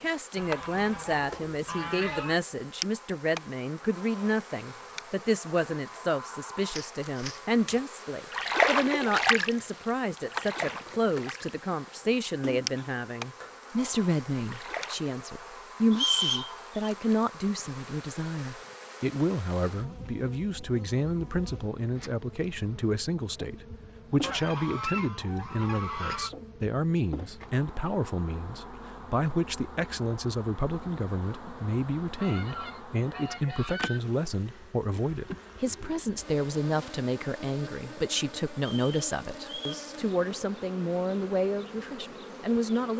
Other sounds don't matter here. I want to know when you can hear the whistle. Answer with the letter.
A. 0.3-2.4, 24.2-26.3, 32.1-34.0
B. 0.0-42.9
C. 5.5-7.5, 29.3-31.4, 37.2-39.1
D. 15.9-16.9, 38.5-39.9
D.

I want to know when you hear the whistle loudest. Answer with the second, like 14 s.
16 s.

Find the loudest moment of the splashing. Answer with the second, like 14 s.
9 s.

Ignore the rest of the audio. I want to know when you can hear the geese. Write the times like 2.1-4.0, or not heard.
0.3-2.4, 24.2-26.3, 32.1-34.0.